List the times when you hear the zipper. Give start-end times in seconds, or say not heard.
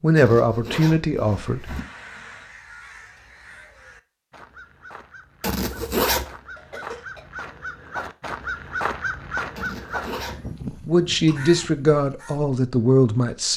0.1-1.8, 5.4-6.2, 9.6-10.5.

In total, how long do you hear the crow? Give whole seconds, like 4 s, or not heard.
11 s.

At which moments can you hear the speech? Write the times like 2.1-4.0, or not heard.
0.0-1.8, 10.7-13.5.